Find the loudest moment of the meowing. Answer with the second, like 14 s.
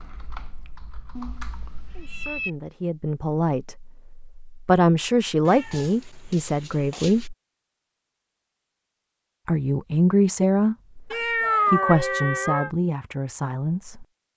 12 s.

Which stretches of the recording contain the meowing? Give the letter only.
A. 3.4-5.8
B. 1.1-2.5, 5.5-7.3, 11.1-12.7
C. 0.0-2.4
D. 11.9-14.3
B.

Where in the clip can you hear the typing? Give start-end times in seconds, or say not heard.
0.0-2.4.